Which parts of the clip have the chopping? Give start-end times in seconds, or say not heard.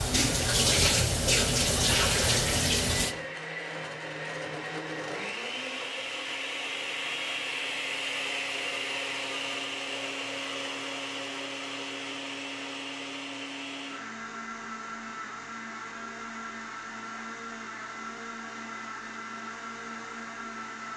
not heard.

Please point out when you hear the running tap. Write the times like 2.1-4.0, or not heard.
0.0-3.1.